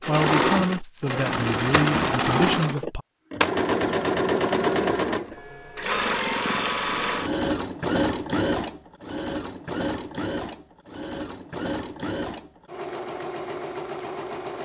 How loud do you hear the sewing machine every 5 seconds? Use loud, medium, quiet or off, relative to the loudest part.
loud, loud, medium.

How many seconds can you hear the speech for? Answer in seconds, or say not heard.
3 s.